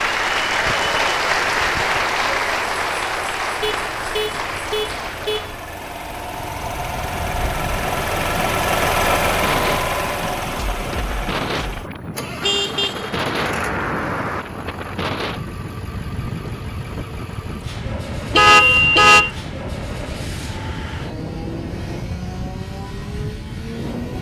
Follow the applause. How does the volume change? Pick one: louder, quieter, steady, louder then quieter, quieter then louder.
quieter.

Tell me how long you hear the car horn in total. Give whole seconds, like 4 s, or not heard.
5 s.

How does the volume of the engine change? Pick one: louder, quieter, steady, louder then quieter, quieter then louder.
louder then quieter.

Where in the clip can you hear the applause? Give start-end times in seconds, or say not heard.
0.0-5.6.